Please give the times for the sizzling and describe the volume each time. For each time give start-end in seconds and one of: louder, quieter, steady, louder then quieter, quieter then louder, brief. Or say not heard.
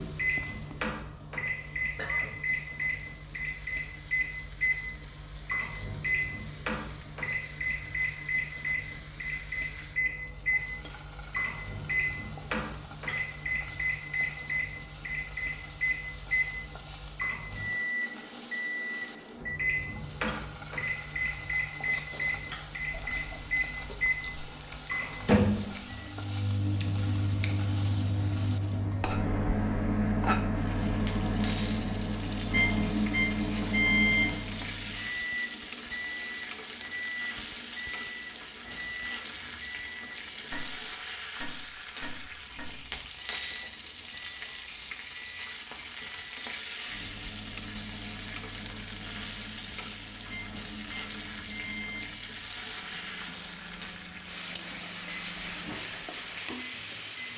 0.0-57.3 louder.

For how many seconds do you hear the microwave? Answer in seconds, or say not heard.
57 s.